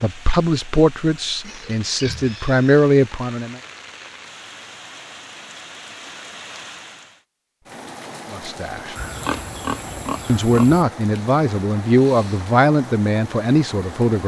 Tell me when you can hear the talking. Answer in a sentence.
You can hear the talking from 0.0 to 3.6 s, from 8.3 to 8.9 s and from 10.2 to 14.2 s.